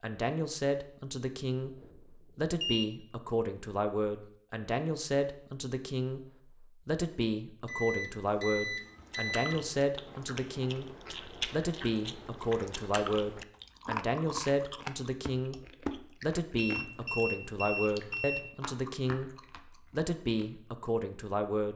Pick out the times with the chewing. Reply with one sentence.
You can hear the chewing from 9.0 to 20.5 s.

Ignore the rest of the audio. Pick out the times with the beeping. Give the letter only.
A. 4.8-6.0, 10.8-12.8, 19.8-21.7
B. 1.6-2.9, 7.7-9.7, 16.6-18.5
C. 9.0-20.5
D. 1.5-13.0
B.